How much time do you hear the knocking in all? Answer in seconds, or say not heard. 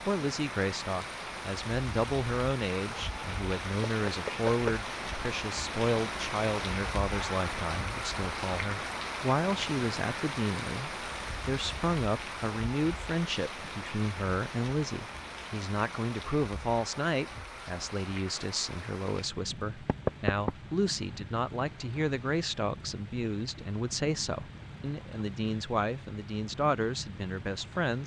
2 s.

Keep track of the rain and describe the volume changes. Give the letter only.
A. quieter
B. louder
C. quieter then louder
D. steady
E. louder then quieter
A.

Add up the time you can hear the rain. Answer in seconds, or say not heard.
28 s.